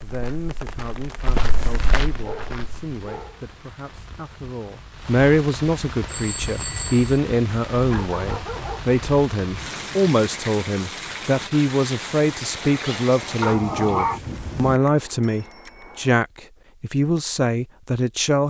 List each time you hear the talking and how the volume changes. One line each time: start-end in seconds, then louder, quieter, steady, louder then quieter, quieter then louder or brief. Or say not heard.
0.0-18.4 louder.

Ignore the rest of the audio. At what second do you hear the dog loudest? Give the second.
14 s.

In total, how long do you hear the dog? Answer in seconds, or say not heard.
4 s.